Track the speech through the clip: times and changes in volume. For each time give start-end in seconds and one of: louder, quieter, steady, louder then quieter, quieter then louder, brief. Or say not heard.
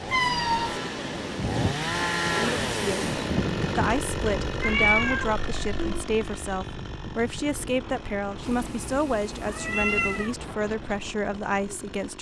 2.4-12.1 steady.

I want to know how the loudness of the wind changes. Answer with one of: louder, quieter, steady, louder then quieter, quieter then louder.
quieter.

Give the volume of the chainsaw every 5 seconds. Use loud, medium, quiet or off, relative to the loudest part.
loud, medium, quiet.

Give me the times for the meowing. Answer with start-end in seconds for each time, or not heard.
0.1-0.8, 4.6-6.1, 8.4-10.3.